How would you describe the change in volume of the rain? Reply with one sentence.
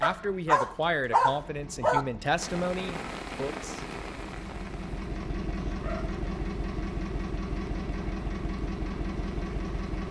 The loudness of the rain goes down.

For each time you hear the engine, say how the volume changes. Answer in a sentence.
The engine can be heard from 0.0 to 10.0 s, getting louder.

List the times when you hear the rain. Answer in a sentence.
You can hear the rain from 2.4 to 10.0 s.